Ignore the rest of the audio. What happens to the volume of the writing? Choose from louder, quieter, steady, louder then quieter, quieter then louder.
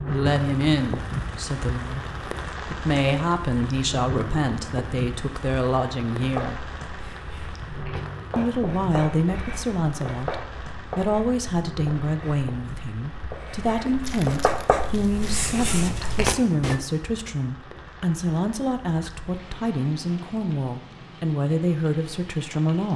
louder.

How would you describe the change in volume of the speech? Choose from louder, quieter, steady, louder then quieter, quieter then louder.
steady.